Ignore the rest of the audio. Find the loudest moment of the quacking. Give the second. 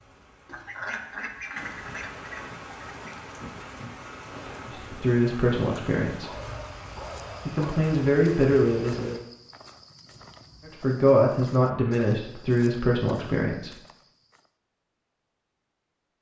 1 s.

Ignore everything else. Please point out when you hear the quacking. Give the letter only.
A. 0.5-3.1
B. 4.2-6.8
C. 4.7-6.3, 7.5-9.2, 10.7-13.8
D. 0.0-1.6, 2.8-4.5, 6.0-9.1
A.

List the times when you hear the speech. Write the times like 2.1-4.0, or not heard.
4.7-6.3, 7.5-9.2, 10.7-13.8.